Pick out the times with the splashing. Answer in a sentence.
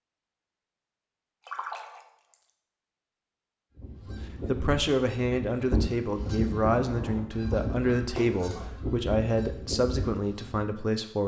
You can hear the splashing from 1.4 to 2.5 s and from 8.2 to 8.8 s.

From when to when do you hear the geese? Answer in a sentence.
The geese can be heard from 3.8 to 10.7 s.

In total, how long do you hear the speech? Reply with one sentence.
You can hear the speech for 7 seconds altogether.